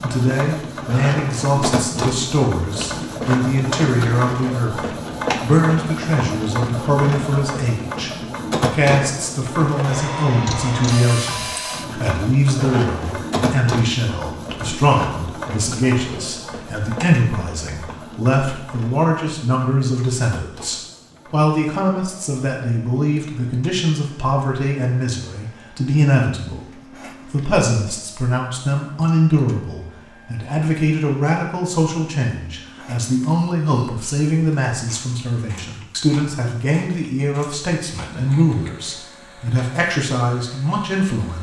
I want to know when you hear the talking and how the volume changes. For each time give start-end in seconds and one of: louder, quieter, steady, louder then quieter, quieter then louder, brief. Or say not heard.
0.0-41.3 steady.